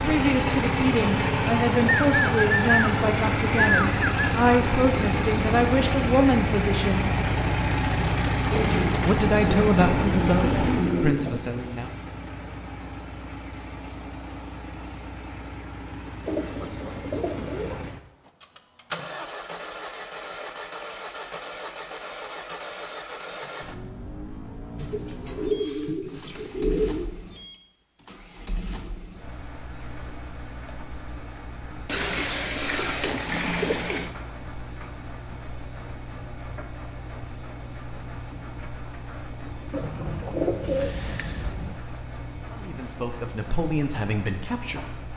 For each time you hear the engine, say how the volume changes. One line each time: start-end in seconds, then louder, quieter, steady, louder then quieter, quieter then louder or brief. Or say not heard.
0.0-45.1 quieter.